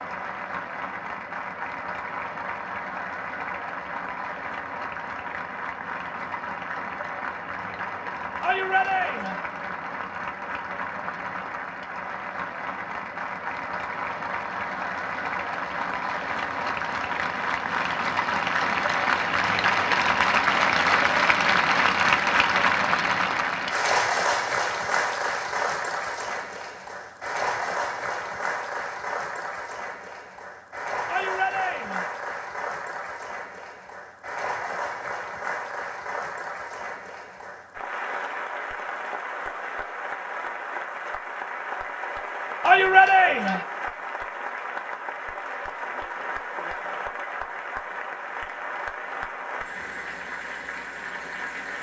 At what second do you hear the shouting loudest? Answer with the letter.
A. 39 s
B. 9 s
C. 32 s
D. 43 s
D.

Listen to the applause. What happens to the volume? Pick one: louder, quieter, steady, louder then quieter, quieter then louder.
louder then quieter.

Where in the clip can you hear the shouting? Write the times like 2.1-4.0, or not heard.
8.4-9.4, 31.1-32.1, 42.6-43.6.